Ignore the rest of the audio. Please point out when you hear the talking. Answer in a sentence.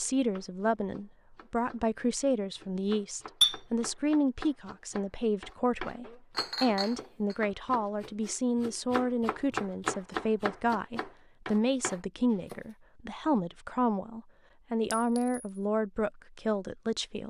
The talking can be heard from 0.0 to 17.2 s.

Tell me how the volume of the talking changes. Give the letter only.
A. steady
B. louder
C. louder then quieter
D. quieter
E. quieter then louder
A.